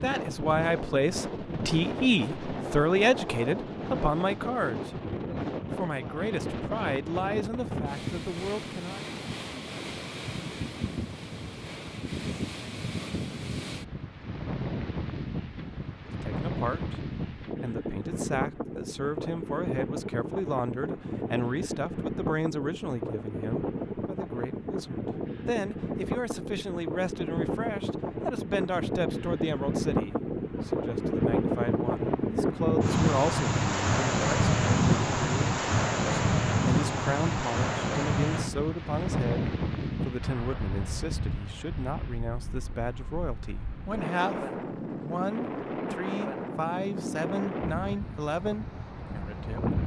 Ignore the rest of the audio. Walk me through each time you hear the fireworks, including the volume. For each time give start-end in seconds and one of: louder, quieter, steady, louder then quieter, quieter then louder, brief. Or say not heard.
not heard.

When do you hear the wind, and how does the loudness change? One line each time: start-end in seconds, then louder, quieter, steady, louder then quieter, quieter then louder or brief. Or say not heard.
0.0-49.8 louder then quieter.